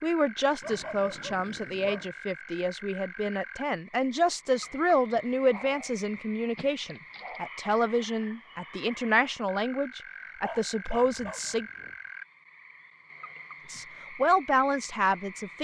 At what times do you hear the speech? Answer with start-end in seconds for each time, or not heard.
0.0-11.7, 13.7-15.5.